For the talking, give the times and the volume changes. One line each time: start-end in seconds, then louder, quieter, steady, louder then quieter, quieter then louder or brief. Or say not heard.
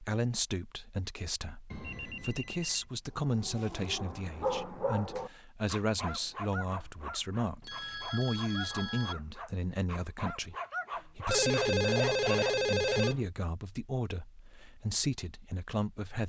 0.0-16.2 steady.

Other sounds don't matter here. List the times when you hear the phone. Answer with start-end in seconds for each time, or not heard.
1.7-2.9, 7.6-9.2, 11.3-13.2.